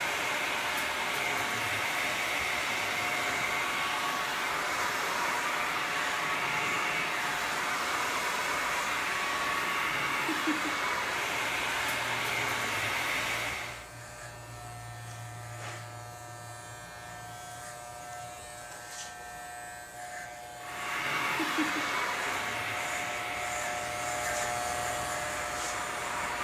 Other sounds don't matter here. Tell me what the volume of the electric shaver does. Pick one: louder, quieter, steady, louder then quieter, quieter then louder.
louder.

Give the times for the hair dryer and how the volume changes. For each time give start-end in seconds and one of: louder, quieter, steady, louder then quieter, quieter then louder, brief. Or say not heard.
0.0-13.9 steady
20.6-26.3 quieter.